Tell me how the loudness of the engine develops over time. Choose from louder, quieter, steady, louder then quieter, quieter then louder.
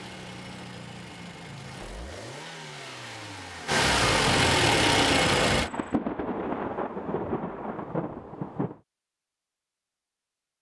louder.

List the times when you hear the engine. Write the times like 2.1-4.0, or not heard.
0.0-5.7.